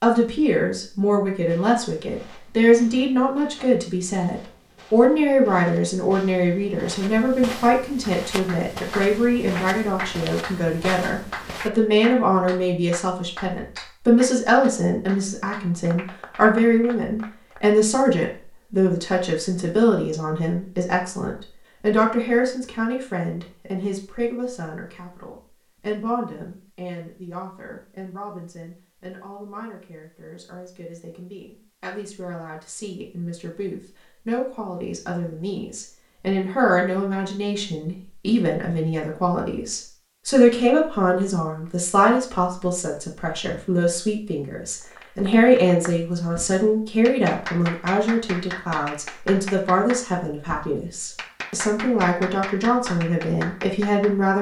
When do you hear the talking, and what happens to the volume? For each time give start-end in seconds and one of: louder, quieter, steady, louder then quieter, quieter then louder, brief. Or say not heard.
0.0-54.3 quieter then louder.